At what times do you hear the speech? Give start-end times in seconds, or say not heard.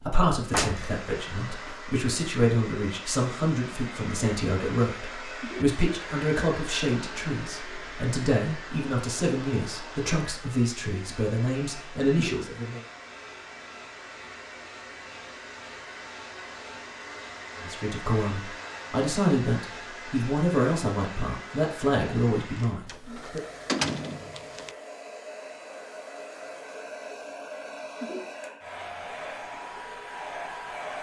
0.0-12.8, 17.6-23.4.